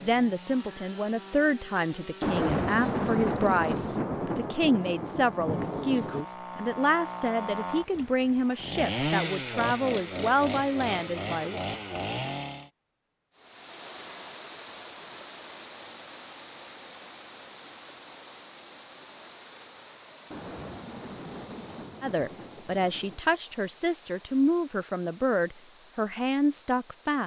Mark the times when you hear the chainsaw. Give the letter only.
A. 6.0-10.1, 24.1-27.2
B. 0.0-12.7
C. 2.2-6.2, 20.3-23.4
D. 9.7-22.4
B.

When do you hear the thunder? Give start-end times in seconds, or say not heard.
2.2-6.2, 20.3-23.4.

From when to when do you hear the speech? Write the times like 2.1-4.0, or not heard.
0.0-11.6, 22.0-27.2.